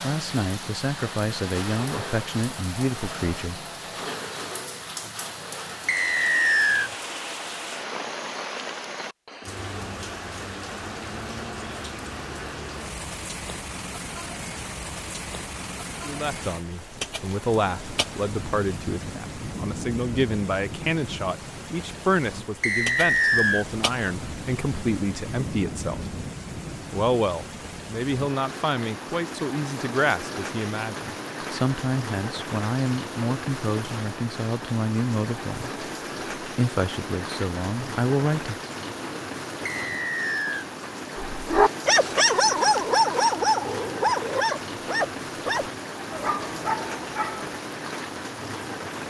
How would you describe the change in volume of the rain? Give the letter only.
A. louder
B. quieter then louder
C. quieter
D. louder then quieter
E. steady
E.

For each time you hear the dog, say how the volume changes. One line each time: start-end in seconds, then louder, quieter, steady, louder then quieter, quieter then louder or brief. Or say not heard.
41.3-47.5 quieter.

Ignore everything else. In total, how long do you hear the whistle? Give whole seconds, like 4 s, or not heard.
3 s.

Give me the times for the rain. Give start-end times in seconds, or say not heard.
0.0-49.0.